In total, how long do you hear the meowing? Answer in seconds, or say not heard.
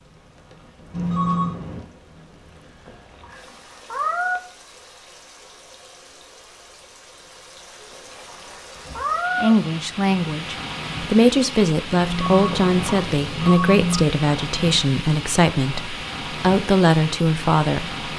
4 s.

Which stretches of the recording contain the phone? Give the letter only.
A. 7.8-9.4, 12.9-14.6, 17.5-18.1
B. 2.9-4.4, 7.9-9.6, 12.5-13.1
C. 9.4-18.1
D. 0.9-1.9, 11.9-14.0
D.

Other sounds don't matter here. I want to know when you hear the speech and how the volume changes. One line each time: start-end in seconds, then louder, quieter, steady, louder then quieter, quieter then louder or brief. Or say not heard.
9.4-18.1 steady.